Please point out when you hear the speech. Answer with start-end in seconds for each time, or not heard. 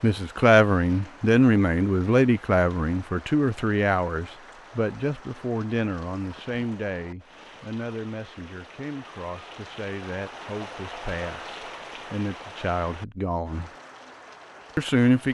0.0-13.7, 14.8-15.2.